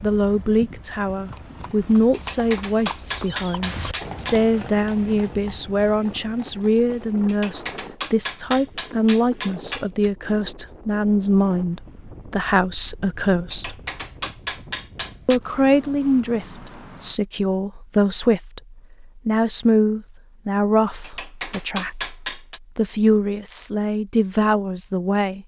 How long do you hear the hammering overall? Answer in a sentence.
The hammering can be heard for 9 seconds in total.